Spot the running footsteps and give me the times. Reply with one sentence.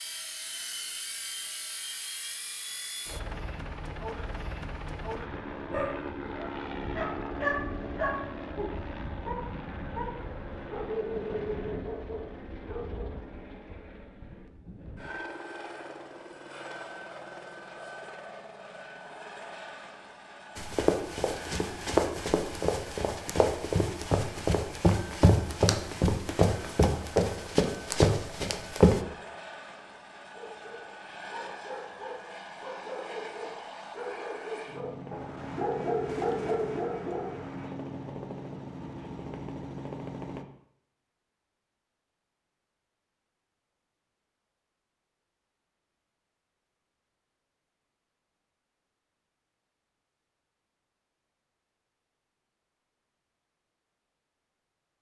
The running footsteps can be heard from 20.6 to 29.0 s.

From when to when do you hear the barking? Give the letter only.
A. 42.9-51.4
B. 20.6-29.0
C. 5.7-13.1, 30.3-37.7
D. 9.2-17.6
C.